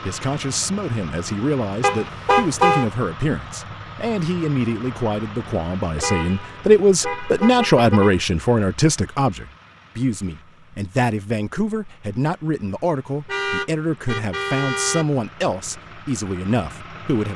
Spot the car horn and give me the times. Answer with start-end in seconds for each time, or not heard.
1.8-2.9, 6.0-8.2, 13.2-15.1.